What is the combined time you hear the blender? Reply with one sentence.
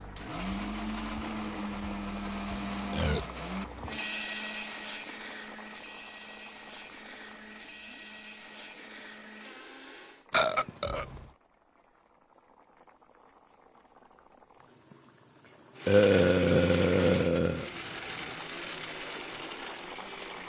The blender can be heard for 15 seconds in total.